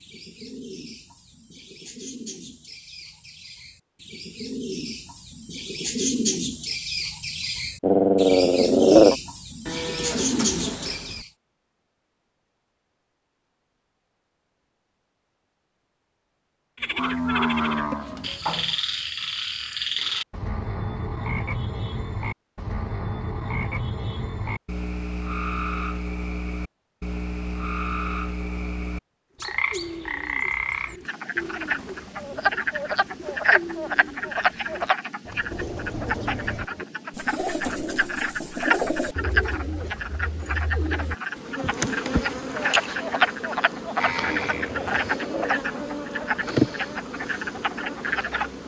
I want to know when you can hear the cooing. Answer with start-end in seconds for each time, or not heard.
0.0-11.3, 29.4-41.5.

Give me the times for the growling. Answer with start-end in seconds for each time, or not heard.
7.8-9.2, 44.2-45.8.